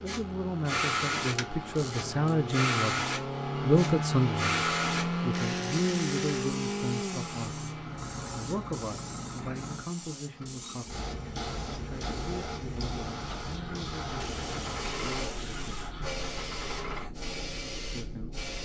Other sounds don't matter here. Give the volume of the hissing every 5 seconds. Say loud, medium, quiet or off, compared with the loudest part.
loud, medium, medium, medium.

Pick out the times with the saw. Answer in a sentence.
The saw can't be heard in this clip.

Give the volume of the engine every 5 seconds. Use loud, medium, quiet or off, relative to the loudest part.
loud, loud, medium, medium.